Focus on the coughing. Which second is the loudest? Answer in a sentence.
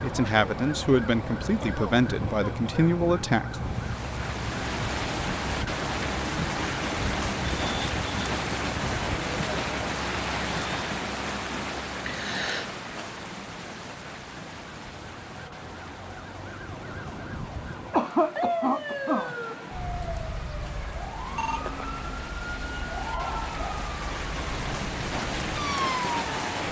The loudest moment of the coughing is at 18 seconds.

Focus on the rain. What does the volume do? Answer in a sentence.
The loudness of the rain goes down, then up.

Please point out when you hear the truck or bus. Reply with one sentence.
You can't hear the truck or bus here.